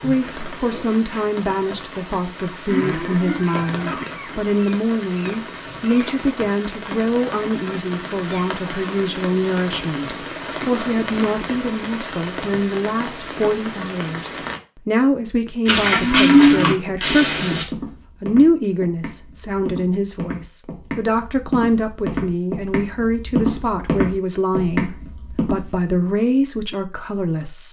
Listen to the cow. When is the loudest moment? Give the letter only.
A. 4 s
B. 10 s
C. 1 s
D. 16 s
D.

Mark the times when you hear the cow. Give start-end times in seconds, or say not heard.
2.6-4.0, 15.7-17.6.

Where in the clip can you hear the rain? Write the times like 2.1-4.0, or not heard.
0.0-14.6.